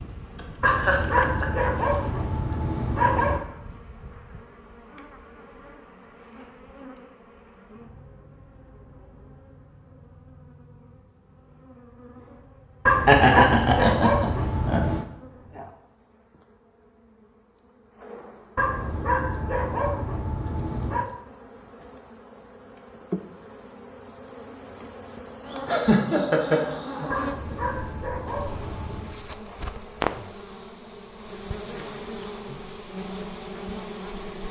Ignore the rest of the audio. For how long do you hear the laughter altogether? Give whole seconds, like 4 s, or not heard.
5 s.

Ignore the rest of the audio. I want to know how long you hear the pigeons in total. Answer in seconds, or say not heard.
not heard.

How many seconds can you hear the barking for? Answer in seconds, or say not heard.
10 s.